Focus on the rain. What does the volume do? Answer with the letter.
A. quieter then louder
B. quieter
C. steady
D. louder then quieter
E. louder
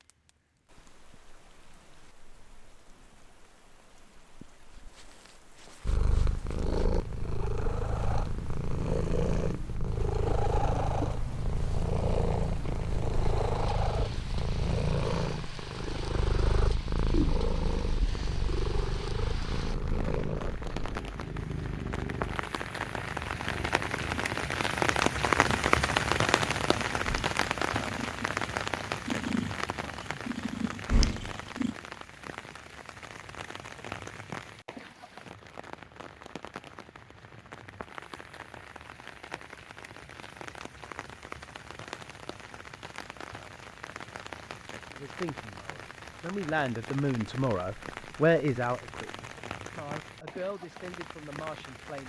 D.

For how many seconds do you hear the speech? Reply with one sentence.
You can hear the speech for 7 seconds altogether.